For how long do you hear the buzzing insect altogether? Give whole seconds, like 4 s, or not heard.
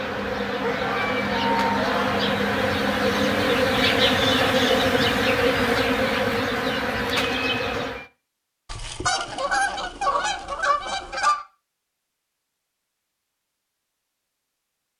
8 s.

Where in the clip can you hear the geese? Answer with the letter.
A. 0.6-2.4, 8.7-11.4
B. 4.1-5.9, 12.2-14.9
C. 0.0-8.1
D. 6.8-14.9
A.